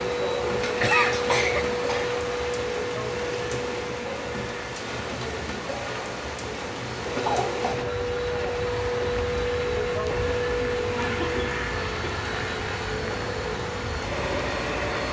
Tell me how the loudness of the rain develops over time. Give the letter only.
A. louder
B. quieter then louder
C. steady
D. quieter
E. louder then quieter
C.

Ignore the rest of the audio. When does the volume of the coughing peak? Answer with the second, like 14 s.
1 s.